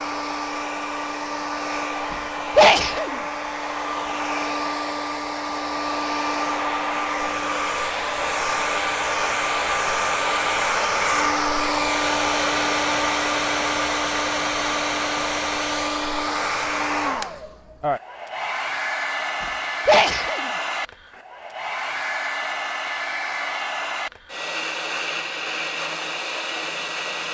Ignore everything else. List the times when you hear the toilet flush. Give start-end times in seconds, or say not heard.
not heard.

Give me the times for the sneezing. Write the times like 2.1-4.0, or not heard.
2.1-3.2, 19.4-20.5.